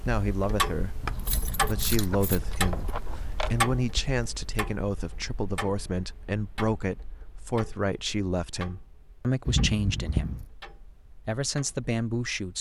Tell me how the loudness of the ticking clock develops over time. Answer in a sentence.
The loudness of the ticking clock goes down.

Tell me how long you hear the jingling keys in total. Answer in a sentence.
You can hear the jingling keys for 4 seconds altogether.